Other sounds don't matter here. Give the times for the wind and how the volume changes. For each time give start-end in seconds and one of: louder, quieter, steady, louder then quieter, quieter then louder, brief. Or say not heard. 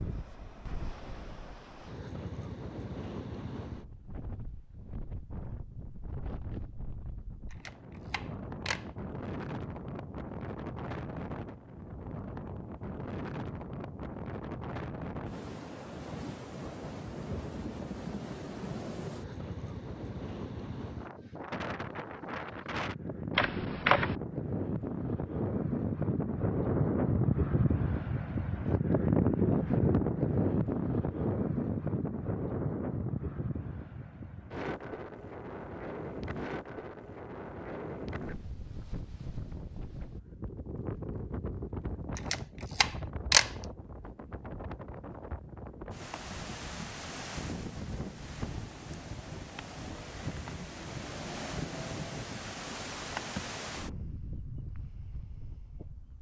0.0-56.1 louder then quieter.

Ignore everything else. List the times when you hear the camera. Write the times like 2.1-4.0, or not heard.
7.5-8.8, 23.4-24.1, 42.1-43.5.